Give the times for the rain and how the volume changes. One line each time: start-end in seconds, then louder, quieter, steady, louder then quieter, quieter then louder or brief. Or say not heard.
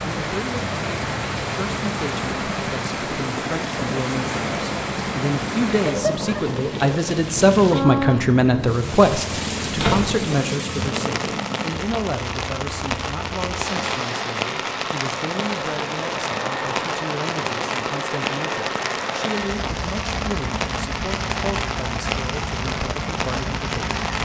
0.0-24.2 steady.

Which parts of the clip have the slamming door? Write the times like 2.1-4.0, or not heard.
9.7-10.2.